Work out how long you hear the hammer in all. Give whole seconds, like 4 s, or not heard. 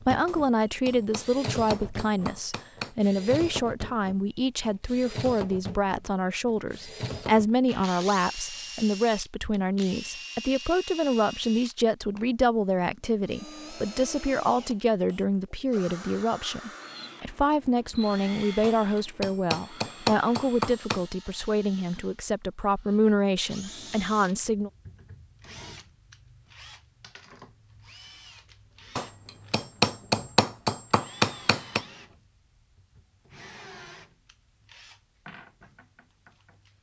8 s.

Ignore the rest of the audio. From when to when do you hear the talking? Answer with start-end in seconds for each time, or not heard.
0.0-24.7.